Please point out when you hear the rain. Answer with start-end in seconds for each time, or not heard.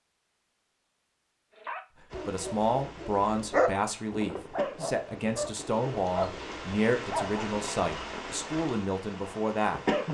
2.1-10.0.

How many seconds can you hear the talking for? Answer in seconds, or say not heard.
8 s.